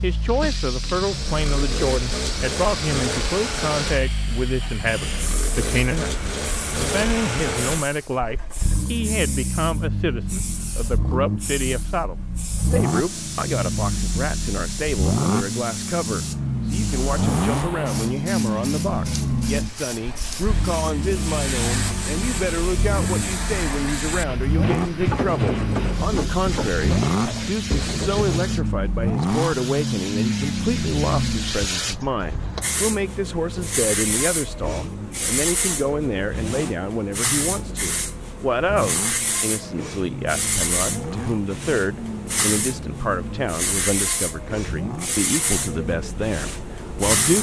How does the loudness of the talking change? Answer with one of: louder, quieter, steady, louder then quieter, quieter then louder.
steady.